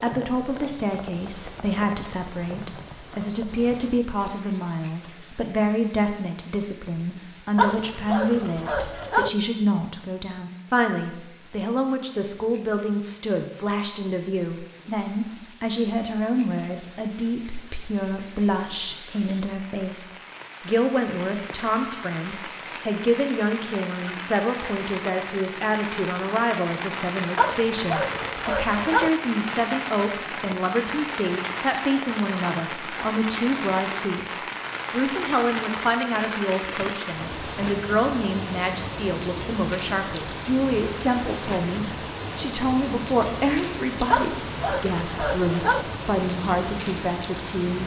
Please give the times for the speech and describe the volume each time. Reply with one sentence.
The speech can be heard from 0.0 to 47.8 s, at a steady volume.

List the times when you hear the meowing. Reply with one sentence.
You can't hear the meowing here.